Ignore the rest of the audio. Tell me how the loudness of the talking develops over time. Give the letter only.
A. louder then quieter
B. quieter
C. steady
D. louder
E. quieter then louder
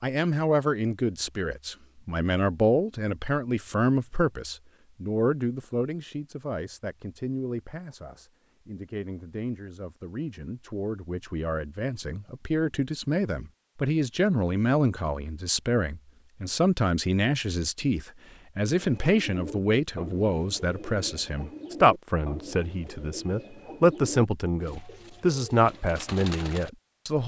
E.